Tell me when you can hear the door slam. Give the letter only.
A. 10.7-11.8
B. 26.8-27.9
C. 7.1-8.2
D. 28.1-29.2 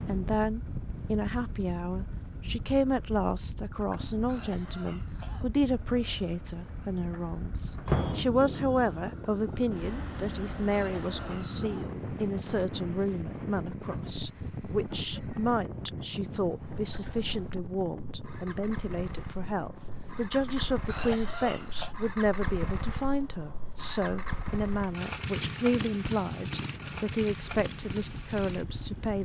C.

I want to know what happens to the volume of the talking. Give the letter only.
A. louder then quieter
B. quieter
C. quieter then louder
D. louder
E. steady
E.